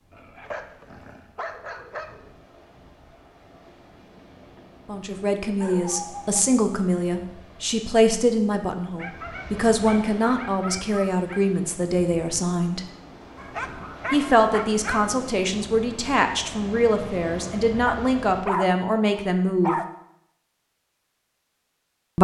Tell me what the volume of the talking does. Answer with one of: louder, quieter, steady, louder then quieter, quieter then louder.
steady.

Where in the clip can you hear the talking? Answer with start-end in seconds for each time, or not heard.
4.8-12.8, 14.1-19.8.